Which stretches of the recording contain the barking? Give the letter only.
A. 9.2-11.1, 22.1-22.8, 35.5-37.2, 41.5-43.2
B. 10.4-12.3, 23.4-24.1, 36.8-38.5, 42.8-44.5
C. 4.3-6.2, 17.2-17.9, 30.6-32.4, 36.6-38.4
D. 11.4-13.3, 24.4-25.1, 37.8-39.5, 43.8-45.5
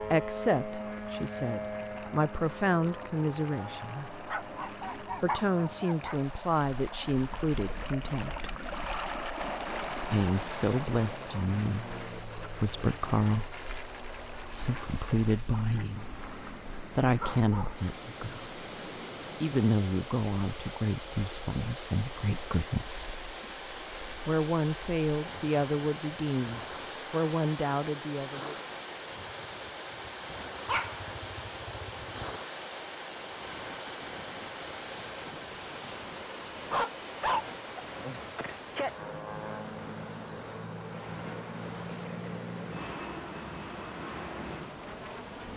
C.